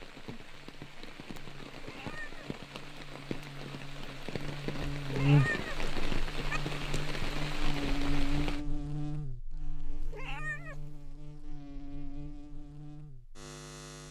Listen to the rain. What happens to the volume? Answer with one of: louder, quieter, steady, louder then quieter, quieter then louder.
louder.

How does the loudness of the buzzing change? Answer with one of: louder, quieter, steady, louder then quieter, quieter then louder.
louder then quieter.